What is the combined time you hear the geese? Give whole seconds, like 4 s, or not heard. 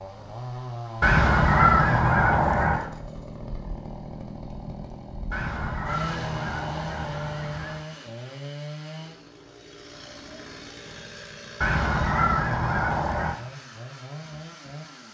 6 s.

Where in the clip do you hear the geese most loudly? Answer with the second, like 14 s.
2 s.